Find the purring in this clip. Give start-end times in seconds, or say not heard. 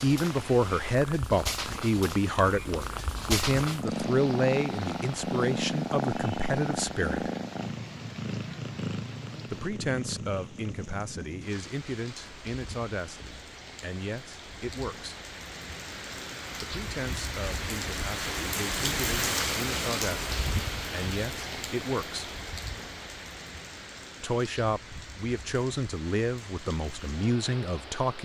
0.0-10.8.